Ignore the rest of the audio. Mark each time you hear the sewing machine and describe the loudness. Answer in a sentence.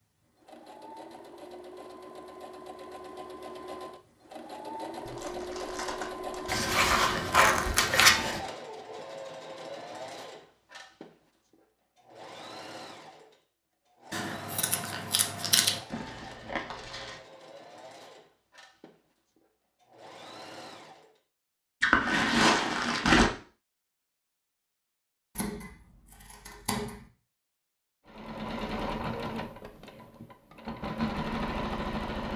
The sewing machine can be heard from 0.0 to 21.2 s, getting louder then quieter; and from 28.1 to 32.3 s, getting quieter then louder.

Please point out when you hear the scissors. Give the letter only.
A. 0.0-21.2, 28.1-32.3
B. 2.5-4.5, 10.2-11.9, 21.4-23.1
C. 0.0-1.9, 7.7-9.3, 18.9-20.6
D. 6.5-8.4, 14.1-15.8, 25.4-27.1
D.